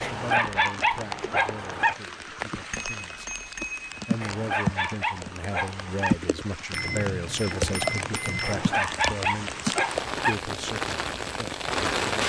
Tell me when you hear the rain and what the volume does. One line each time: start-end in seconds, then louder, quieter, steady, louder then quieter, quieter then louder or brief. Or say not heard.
0.0-12.2 louder.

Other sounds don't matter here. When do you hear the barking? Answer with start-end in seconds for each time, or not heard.
0.0-1.9, 4.2-6.2, 8.4-10.3.